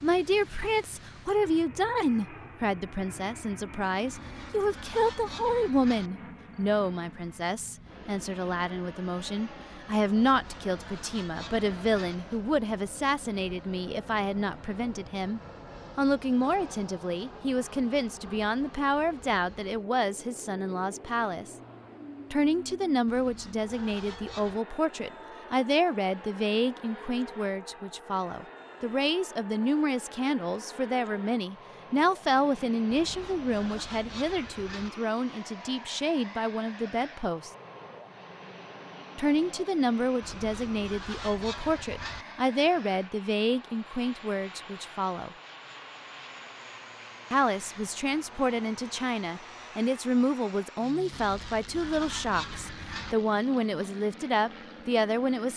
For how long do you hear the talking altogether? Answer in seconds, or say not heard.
51 s.